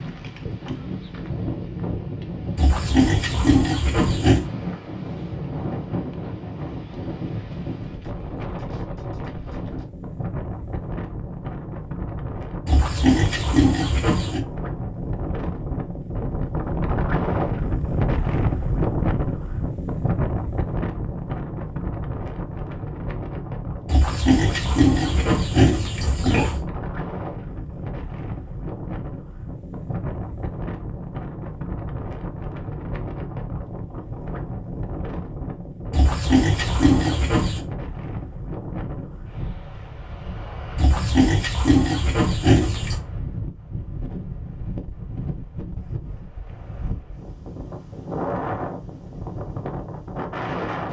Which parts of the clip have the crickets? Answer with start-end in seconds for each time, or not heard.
not heard.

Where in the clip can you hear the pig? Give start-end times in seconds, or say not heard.
2.5-4.5, 12.7-14.4, 23.9-26.6, 35.9-37.6, 40.8-43.0.